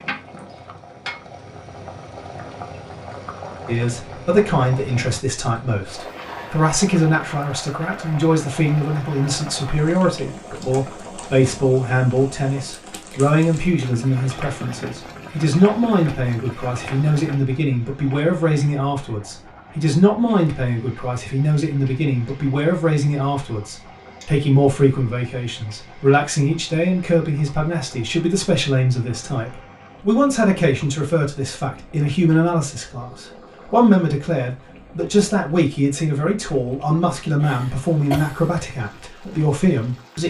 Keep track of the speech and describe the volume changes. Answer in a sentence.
The loudness of the speech stays about the same.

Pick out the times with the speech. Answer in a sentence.
The speech can be heard from 3.6 to 40.2 s.